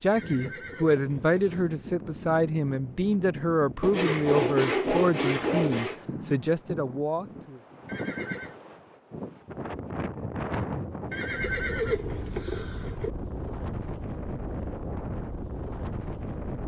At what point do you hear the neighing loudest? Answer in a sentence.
The volume of the neighing peaks at 12 seconds.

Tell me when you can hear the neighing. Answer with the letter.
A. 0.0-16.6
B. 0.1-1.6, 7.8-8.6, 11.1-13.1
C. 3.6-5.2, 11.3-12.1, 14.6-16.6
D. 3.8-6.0
B.